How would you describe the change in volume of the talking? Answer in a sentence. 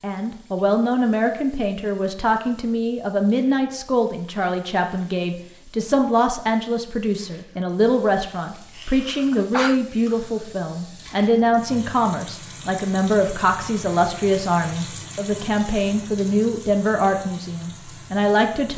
The loudness of the talking stays about the same.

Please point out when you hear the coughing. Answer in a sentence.
The coughing can be heard from 8.8 to 9.8 s.